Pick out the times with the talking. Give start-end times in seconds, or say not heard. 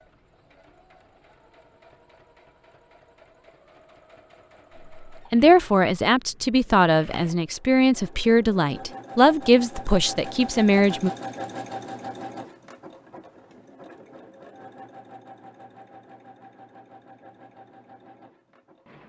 5.3-11.1.